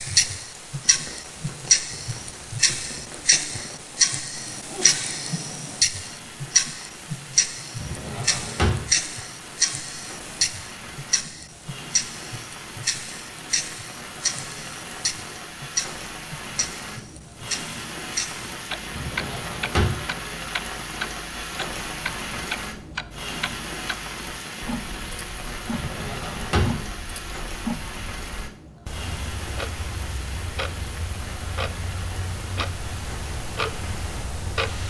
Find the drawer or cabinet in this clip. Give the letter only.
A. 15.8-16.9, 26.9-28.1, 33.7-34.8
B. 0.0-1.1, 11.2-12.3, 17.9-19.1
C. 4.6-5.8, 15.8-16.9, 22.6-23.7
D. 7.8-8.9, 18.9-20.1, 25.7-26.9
D.